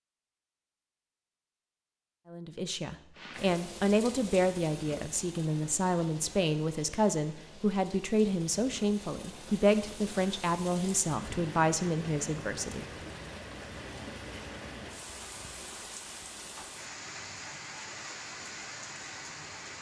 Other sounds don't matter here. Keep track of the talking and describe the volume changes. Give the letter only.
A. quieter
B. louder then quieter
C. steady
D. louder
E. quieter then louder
C.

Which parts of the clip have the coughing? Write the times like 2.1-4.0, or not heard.
not heard.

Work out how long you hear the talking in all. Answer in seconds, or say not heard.
11 s.